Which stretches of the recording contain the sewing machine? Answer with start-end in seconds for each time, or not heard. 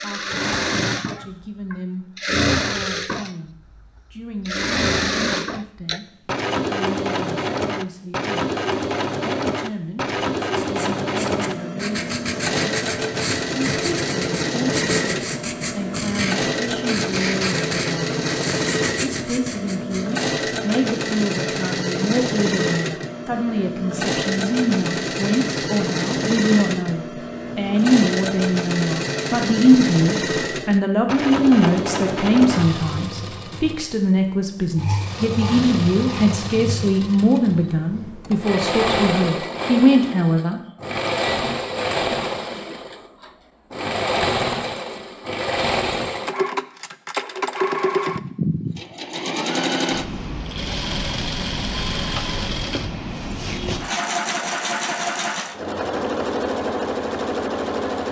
0.0-58.0.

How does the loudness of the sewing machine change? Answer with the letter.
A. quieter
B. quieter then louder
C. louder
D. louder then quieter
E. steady
E.